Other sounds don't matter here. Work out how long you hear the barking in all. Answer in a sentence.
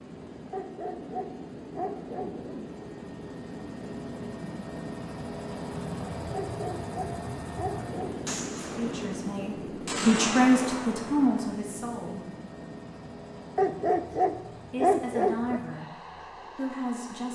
You can hear the barking for 6 seconds altogether.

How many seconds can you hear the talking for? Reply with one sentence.
You can hear the talking for 5 seconds altogether.